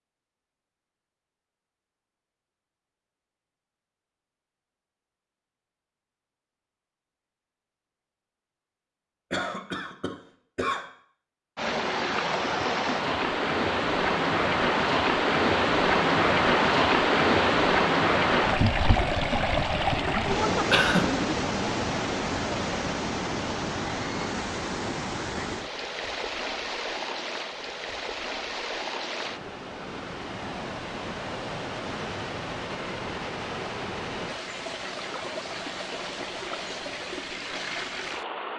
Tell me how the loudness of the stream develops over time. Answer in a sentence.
The volume of the stream goes down.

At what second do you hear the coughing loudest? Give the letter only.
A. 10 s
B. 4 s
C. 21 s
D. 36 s
C.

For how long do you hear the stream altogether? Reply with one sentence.
The stream can be heard for 27 seconds in total.